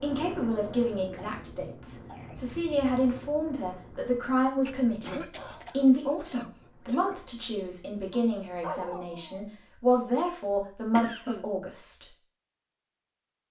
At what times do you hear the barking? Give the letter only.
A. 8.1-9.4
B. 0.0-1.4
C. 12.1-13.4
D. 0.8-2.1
A.